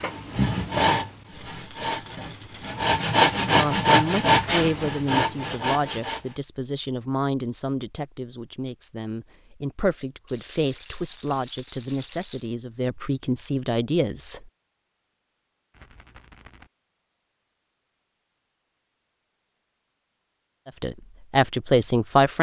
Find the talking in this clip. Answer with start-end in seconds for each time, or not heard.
3.5-14.4, 20.6-22.3.